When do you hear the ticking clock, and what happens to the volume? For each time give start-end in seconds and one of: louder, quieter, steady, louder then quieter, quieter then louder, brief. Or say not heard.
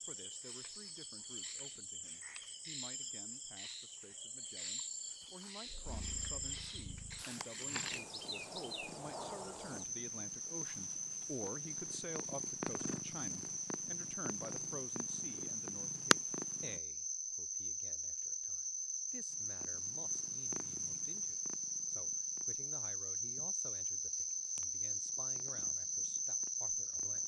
not heard.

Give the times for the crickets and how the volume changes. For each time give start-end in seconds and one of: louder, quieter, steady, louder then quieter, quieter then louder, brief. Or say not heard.
0.0-27.2 louder.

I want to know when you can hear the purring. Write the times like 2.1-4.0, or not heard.
5.7-16.8, 19.3-27.2.